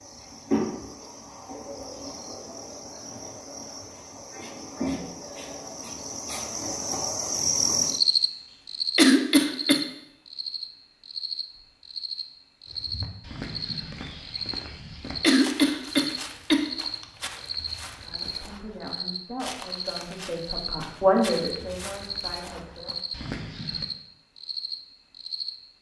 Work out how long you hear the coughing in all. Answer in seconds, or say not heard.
3 s.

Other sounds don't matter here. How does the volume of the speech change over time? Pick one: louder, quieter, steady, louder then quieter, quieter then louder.
louder then quieter.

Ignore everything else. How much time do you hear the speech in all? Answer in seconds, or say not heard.
5 s.